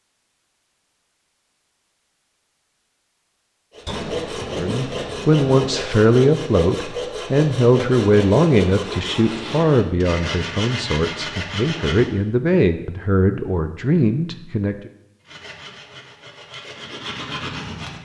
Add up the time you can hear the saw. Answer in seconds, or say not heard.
11 s.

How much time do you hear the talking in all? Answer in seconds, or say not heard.
10 s.